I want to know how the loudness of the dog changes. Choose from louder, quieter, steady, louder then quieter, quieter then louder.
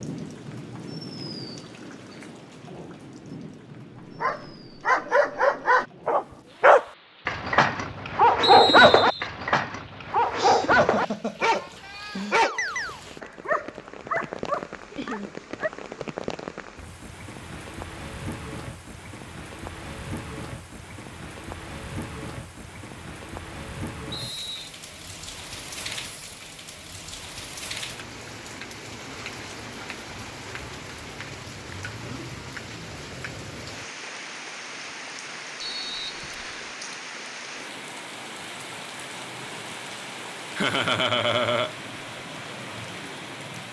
quieter.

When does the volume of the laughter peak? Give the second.
41 s.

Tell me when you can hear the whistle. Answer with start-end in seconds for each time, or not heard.
8.4-9.3, 24.1-24.7, 35.6-36.7.